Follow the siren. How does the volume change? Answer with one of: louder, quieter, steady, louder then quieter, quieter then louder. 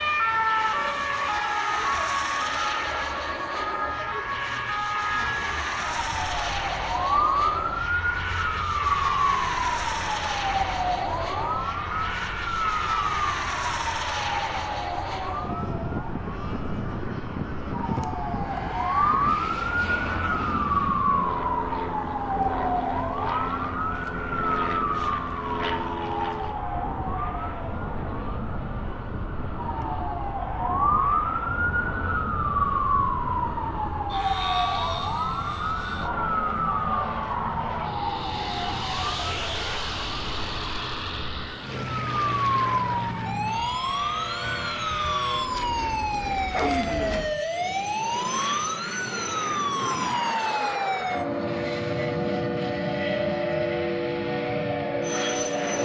steady.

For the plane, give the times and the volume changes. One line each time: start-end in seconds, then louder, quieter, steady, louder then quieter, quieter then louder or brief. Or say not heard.
0.0-55.8 steady.